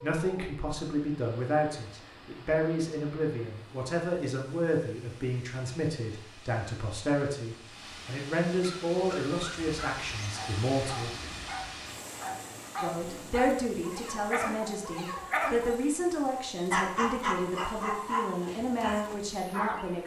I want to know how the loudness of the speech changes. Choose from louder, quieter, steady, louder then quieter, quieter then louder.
steady.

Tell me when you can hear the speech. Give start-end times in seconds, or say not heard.
0.0-11.1, 12.8-20.0.